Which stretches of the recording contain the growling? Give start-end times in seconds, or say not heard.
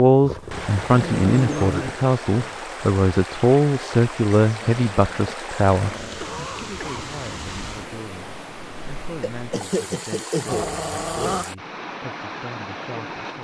0.2-1.9, 4.6-6.3, 10.4-11.4.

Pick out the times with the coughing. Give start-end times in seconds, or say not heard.
1.7-2.6, 6.0-7.1, 9.2-11.4.